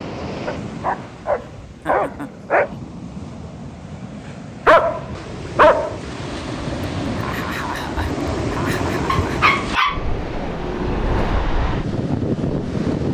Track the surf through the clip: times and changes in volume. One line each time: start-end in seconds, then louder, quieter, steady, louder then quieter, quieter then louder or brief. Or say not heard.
0.0-13.0 louder.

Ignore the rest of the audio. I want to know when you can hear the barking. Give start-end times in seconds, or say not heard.
0.5-2.7, 4.7-6.0, 9.1-11.3.